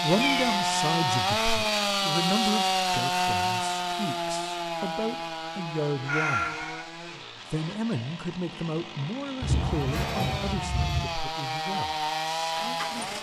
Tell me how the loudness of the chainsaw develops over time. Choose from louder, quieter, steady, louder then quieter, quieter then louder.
quieter then louder.